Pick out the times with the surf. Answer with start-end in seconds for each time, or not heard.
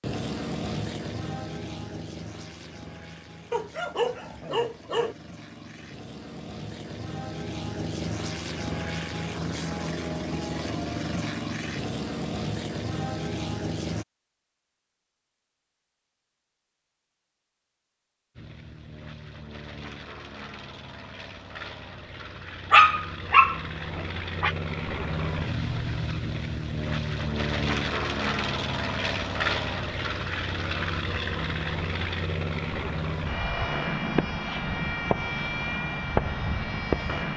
not heard.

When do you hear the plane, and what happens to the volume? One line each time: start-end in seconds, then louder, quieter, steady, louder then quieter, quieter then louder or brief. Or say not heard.
0.0-14.1 quieter then louder
18.4-37.3 louder.